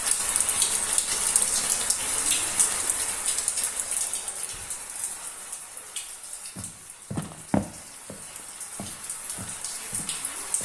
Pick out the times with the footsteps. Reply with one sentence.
The footsteps can be heard from 6.5 to 10.5 s.